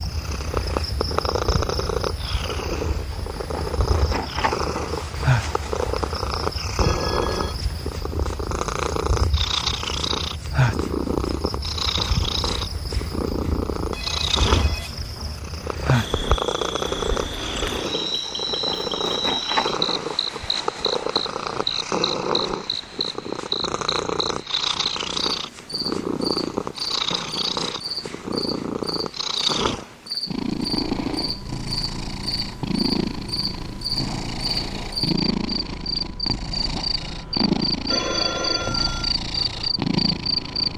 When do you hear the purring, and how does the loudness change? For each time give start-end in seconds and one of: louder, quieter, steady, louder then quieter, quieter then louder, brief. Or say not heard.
0.0-40.7 steady.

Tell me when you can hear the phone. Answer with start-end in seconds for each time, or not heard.
6.8-7.5, 13.9-15.4, 37.9-39.1.